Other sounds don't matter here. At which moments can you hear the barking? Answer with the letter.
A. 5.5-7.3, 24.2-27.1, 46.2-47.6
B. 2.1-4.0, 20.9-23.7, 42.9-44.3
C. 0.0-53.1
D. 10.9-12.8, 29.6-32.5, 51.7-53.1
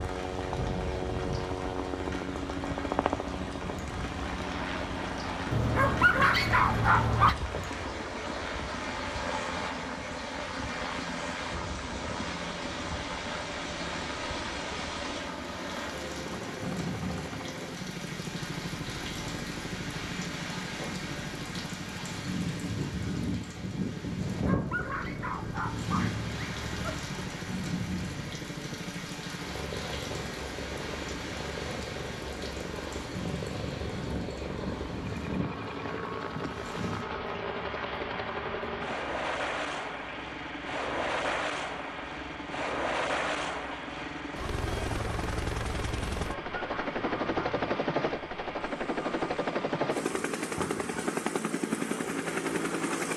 A.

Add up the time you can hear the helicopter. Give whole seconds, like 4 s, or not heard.
53 s.